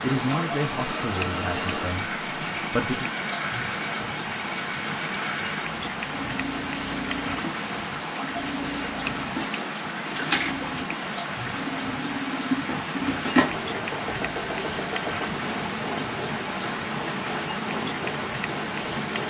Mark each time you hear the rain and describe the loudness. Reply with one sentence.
The rain can be heard from 0.0 to 19.2 s, at a steady volume.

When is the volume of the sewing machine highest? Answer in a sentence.
The loudest moment of the sewing machine is at 13 seconds.